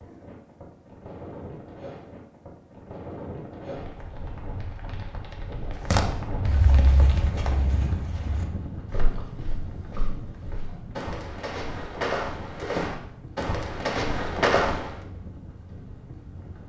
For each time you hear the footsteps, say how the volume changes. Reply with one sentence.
You can hear the footsteps from 5.9 to 14.9 s, getting quieter then louder.